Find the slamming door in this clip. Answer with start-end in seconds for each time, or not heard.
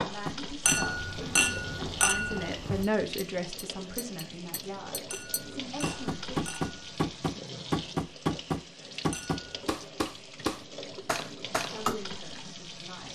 not heard.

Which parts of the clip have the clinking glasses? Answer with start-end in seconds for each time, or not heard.
0.7-2.9, 5.1-7.0, 9.1-9.5.